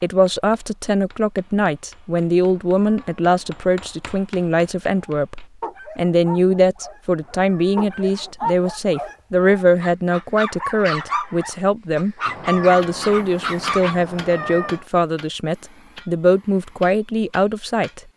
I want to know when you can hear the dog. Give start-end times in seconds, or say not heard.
5.0-14.0.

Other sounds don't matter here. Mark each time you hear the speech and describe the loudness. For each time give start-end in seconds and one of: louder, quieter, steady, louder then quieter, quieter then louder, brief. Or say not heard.
0.0-18.0 steady.